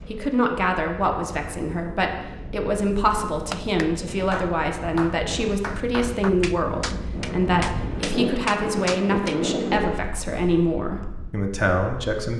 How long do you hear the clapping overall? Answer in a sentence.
You can hear the clapping for 6 seconds altogether.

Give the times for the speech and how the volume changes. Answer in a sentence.
The speech can be heard from 0.1 to 12.3 s, at a steady volume.